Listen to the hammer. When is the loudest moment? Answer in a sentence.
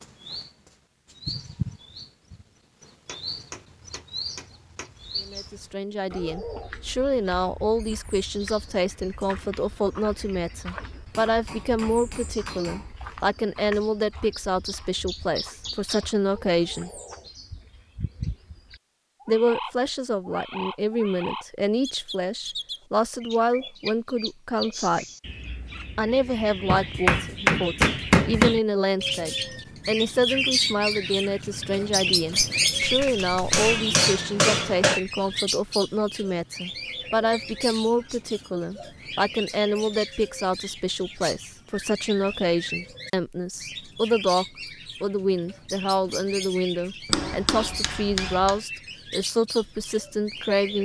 The volume of the hammer peaks at 28 seconds.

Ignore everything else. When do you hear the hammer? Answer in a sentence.
You can hear the hammer from 3.0 to 5.0 s, from 11.1 to 12.9 s, from 26.6 to 28.6 s, from 33.5 to 35.0 s and from 47.0 to 48.6 s.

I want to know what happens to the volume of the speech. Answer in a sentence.
The loudness of the speech stays about the same.